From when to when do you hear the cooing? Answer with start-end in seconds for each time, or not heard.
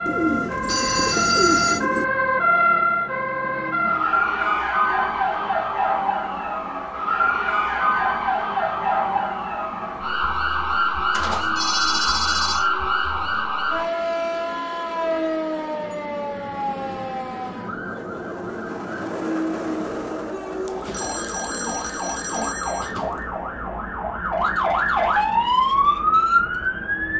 0.1-2.0, 20.5-23.3.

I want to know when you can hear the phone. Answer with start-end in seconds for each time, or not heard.
0.7-1.8, 11.1-12.7, 20.9-22.9.